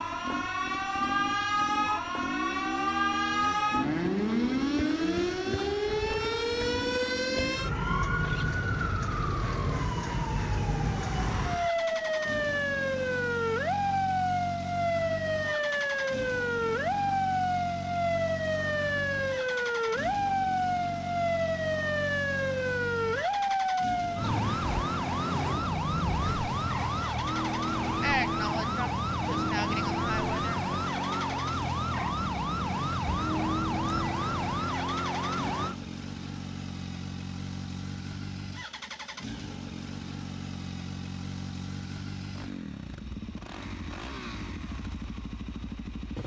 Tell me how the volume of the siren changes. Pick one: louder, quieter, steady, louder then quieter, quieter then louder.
steady.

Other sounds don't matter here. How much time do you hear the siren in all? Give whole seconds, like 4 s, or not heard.
36 s.